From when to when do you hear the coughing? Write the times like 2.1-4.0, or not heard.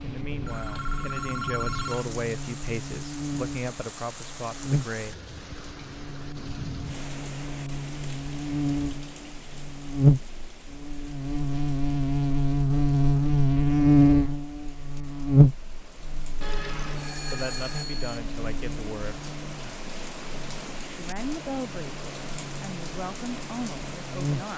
not heard.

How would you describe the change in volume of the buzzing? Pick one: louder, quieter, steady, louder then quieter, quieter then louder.
louder then quieter.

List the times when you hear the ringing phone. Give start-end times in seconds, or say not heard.
0.4-2.1, 16.4-18.2.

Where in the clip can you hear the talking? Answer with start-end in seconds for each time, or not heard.
0.0-5.3, 17.3-19.3, 20.9-24.5.